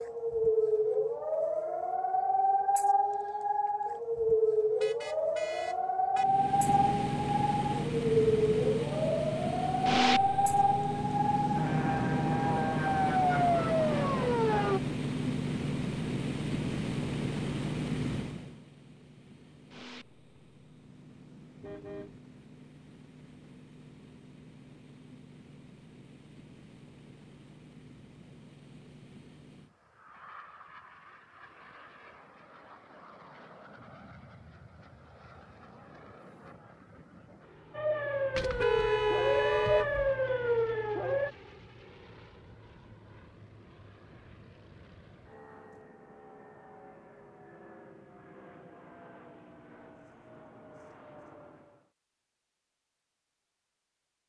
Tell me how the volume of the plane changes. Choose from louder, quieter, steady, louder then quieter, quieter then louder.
quieter.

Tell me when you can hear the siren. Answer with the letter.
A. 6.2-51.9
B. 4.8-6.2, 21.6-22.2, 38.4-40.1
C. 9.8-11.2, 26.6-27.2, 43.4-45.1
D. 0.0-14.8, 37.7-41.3
D.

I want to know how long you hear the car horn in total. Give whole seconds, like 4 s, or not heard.
4 s.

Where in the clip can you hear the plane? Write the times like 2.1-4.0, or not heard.
6.2-51.9.